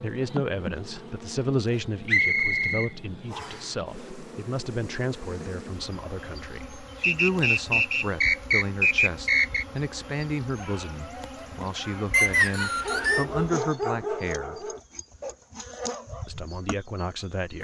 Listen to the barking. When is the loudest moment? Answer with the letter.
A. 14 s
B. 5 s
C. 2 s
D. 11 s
A.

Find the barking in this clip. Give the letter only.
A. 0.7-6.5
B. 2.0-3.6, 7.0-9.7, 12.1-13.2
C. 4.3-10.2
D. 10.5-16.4
D.